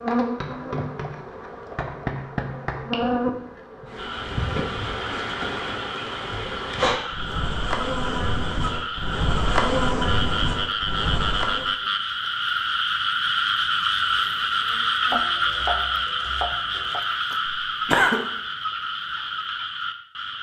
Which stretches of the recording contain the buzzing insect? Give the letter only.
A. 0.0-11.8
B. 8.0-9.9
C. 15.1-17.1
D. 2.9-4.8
A.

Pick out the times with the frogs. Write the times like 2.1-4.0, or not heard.
4.0-20.3.